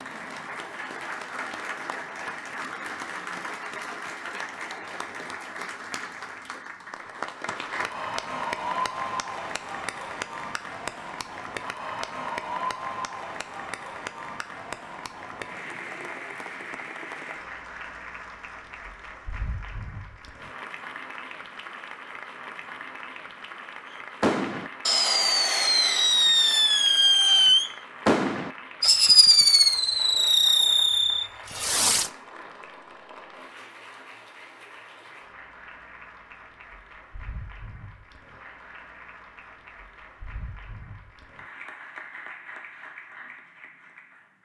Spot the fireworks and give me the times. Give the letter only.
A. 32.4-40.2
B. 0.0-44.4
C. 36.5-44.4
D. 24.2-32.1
D.